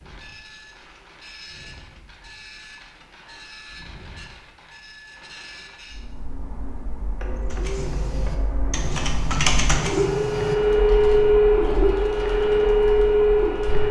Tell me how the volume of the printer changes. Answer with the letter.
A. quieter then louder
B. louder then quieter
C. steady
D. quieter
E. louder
E.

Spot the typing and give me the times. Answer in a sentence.
You can hear the typing from 7.5 to 13.8 s.